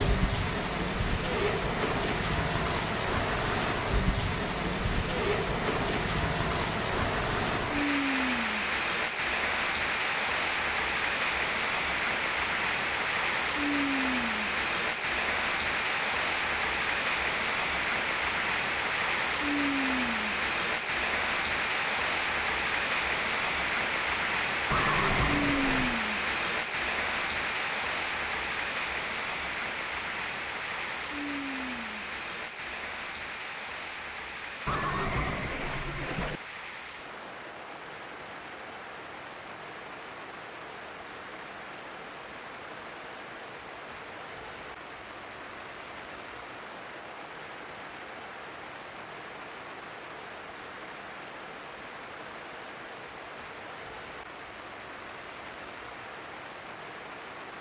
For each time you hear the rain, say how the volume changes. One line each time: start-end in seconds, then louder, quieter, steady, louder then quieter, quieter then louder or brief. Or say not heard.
0.0-57.5 quieter.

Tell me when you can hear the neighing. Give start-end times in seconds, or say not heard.
24.7-26.0, 34.6-36.4.